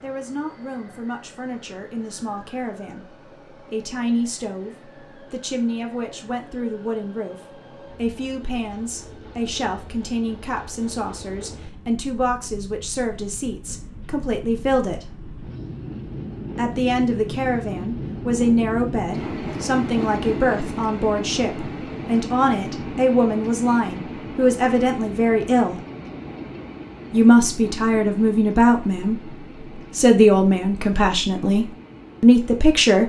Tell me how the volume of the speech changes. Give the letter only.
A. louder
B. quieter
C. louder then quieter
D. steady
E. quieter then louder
A.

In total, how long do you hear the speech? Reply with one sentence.
You can hear the speech for 30 seconds altogether.